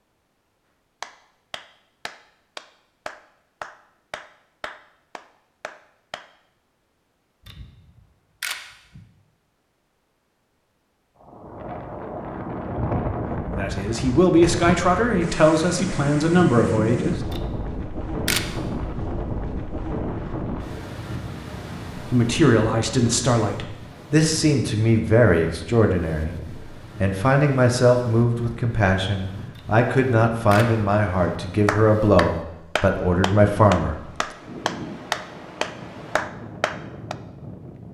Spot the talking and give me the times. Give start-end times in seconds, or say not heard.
13.6-17.2, 21.9-34.0.